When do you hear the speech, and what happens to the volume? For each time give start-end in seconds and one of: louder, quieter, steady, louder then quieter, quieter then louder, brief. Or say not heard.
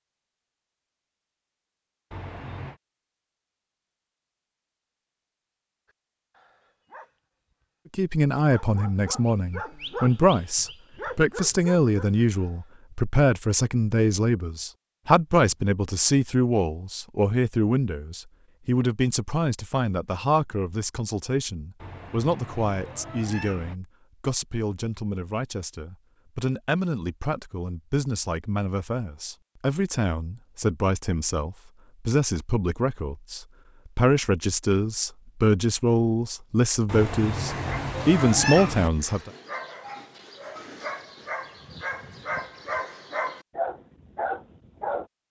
8.0-39.3 quieter then louder.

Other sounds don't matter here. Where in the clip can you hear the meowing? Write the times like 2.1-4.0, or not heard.
2.1-2.8, 21.8-23.8, 36.9-38.9.